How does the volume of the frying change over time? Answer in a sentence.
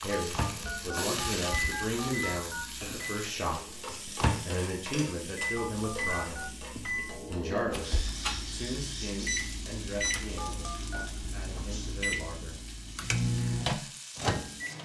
The volume of the frying goes down.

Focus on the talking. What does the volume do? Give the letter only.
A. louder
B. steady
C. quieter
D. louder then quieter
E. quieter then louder
C.